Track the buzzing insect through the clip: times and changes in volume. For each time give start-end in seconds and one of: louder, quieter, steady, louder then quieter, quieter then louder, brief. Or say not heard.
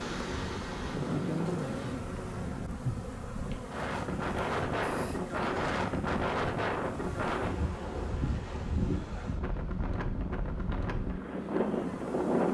0.0-12.4 quieter.